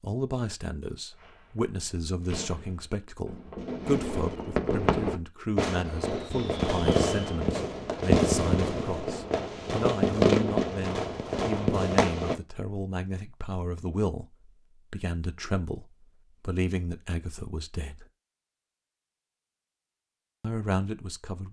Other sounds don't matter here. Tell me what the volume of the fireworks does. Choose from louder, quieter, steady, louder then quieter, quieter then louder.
louder.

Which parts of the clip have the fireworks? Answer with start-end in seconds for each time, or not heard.
1.1-12.3.